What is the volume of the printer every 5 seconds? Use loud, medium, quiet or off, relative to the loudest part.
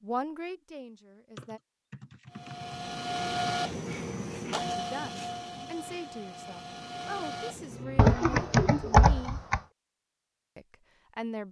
loud, medium, off.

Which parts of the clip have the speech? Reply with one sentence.
You can hear the speech from 0.0 to 1.6 s, from 4.8 to 9.4 s and from 10.6 to 11.4 s.